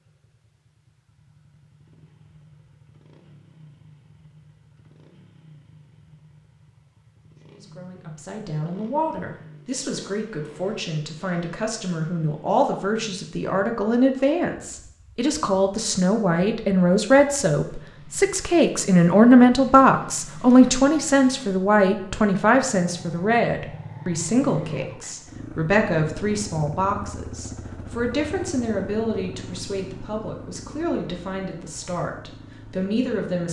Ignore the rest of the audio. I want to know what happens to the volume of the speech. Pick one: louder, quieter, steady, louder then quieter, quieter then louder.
louder then quieter.